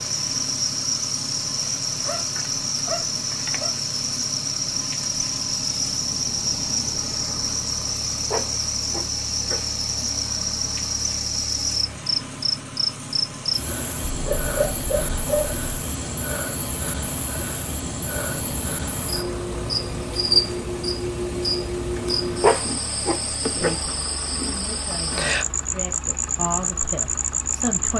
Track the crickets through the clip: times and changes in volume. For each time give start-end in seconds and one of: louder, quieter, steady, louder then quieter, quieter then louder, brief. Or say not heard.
0.0-27.9 steady.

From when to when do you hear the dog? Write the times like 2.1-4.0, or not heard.
2.0-3.7, 8.3-9.6, 14.1-15.6, 22.4-23.8.